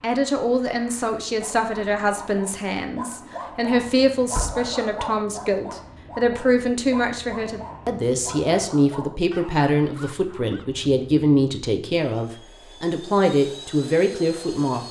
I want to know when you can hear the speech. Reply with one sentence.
You can hear the speech from 0.0 to 14.8 s.